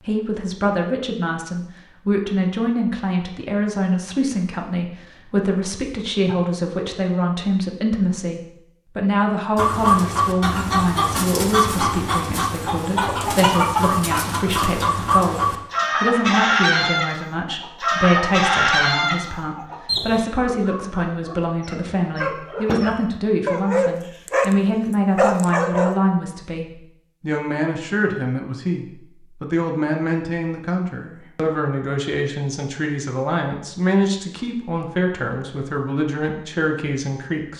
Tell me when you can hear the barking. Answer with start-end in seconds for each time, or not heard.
20.4-24.6, 25.1-25.9.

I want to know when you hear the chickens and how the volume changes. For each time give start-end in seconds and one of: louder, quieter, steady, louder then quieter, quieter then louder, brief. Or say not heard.
9.6-20.2 steady.